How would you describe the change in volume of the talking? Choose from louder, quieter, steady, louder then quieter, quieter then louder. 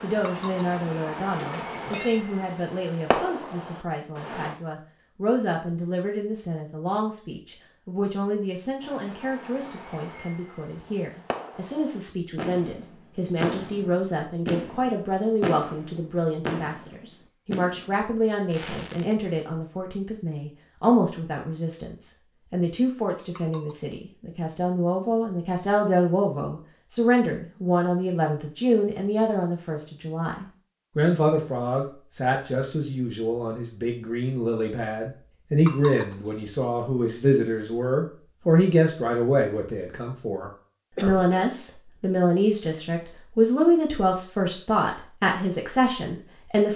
louder.